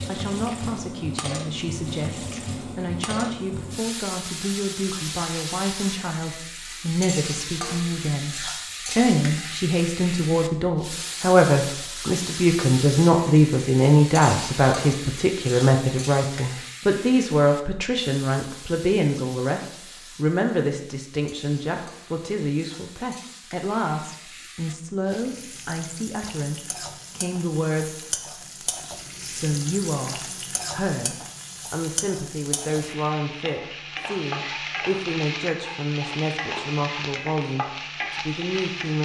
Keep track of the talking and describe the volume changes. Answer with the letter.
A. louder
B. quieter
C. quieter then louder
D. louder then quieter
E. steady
D.